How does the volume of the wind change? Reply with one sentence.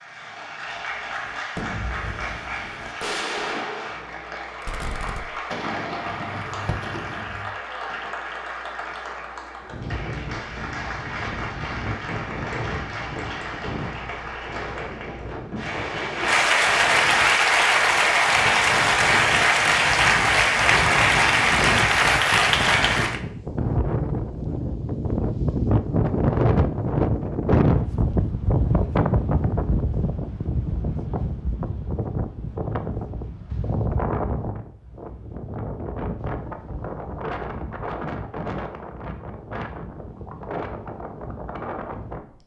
The volume of the wind goes up, then down.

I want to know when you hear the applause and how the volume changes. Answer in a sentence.
You can hear the applause from 0.0 to 23.2 s, getting louder.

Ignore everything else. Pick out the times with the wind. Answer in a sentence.
You can hear the wind from 9.6 to 42.4 s.